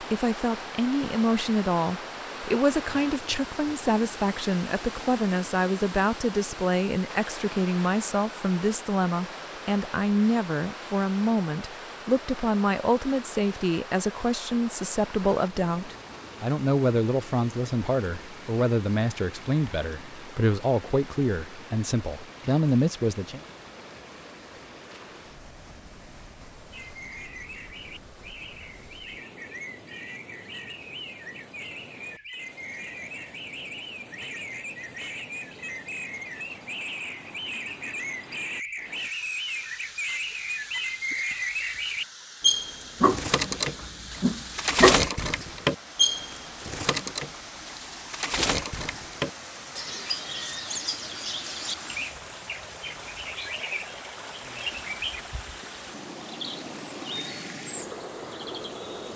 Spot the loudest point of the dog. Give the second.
45 s.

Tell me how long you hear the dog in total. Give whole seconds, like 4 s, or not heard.
2 s.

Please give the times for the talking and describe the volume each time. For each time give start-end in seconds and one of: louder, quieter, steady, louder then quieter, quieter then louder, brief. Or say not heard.
0.0-23.4 steady.